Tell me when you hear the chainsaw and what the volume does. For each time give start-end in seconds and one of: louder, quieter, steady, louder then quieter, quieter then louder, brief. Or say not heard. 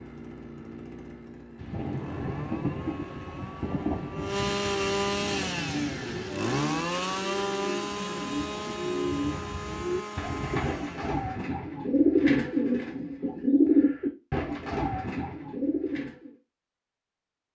0.0-11.4 louder then quieter.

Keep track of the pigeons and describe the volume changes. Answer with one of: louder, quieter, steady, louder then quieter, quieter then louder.
louder then quieter.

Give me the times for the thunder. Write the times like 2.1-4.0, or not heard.
1.6-6.3.